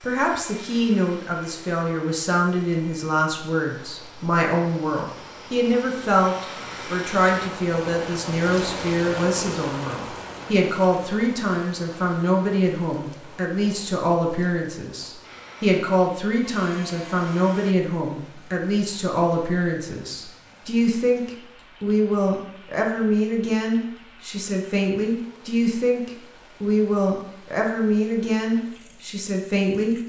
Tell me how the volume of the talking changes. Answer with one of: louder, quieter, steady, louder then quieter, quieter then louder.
steady.